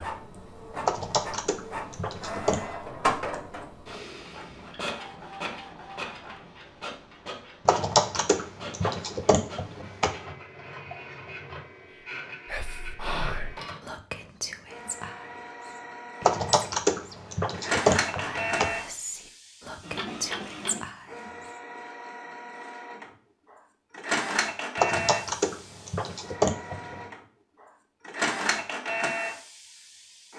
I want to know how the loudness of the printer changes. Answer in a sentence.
The loudness of the printer goes down, then up.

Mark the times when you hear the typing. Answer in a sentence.
The typing can be heard from 0.8 to 2.6 s, from 7.7 to 10.1 s, from 16.2 to 18.7 s and from 24.8 to 27.0 s.